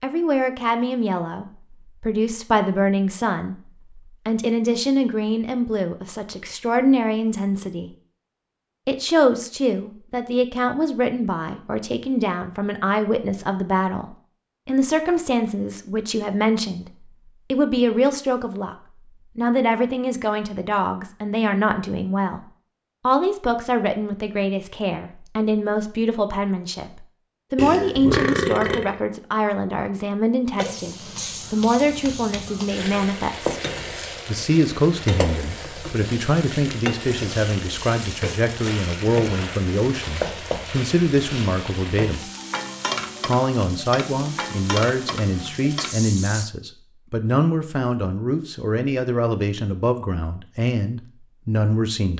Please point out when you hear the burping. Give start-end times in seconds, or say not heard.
27.6-29.0.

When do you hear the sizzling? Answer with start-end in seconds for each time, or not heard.
30.6-46.5.